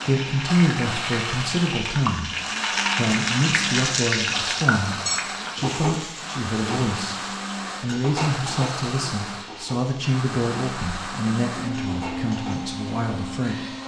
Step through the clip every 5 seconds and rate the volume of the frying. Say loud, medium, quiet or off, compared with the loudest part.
loud, medium, quiet.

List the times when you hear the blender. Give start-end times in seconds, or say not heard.
0.0-13.8.